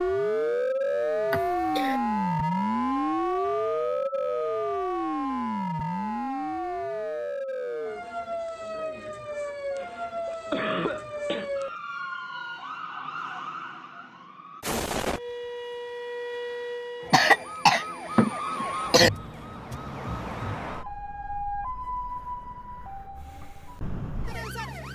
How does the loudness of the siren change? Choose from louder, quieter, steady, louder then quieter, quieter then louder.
quieter.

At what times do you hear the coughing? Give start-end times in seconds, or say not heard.
1.3-2.0, 9.8-11.5, 17.1-19.1.